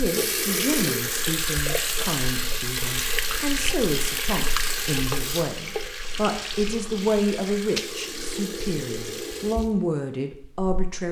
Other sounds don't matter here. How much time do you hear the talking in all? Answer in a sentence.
The talking can be heard for 11 seconds in total.